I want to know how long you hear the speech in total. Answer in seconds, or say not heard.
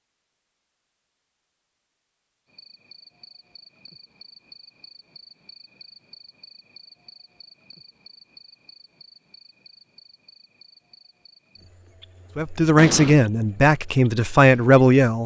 3 s.